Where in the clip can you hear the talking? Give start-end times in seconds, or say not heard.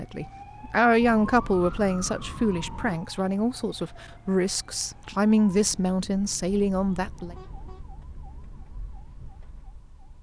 0.0-7.3.